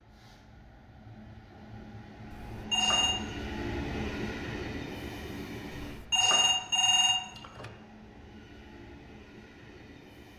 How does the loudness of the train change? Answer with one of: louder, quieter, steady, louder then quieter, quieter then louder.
louder then quieter.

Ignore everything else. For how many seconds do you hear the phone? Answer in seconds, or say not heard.
3 s.